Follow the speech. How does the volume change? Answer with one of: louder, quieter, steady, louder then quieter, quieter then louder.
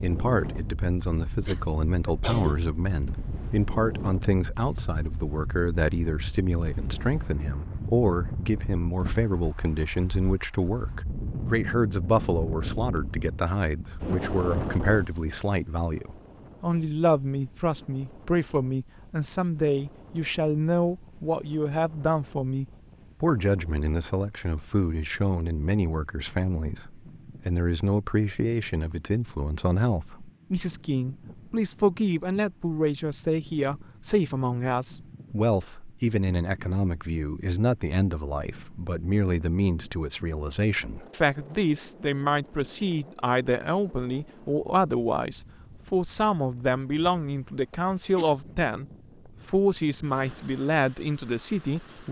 steady.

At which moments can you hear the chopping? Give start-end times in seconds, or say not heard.
not heard.